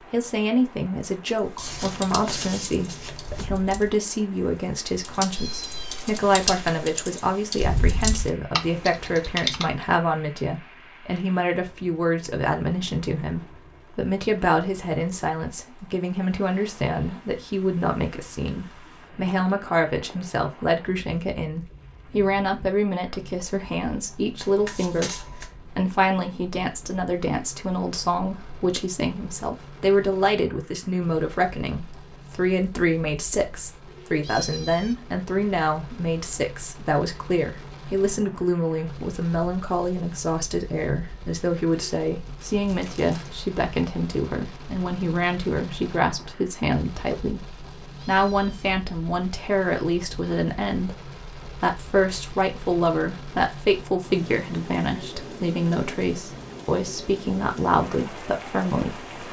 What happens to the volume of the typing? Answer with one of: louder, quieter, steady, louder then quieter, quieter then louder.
quieter then louder.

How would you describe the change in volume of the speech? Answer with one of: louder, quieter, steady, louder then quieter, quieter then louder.
steady.